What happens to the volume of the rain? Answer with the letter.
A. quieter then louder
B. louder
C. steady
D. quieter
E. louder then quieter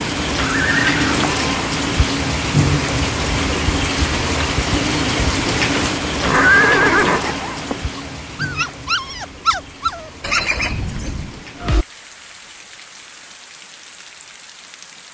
D.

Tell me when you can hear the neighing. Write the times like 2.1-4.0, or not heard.
0.5-1.2, 6.0-7.8, 10.2-11.8.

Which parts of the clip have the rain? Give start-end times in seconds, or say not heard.
0.0-15.1.